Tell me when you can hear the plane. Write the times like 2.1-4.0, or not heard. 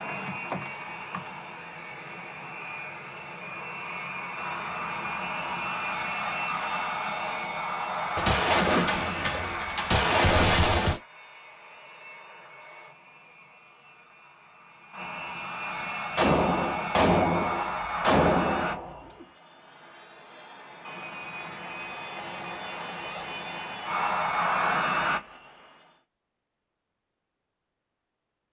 0.0-25.7.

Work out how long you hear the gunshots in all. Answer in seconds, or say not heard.
6 s.